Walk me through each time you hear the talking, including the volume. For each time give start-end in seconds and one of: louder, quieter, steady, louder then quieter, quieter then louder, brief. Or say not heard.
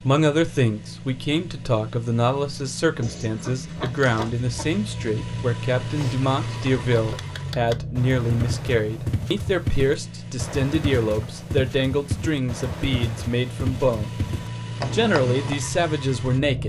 0.0-14.2 steady
14.8-16.6 brief.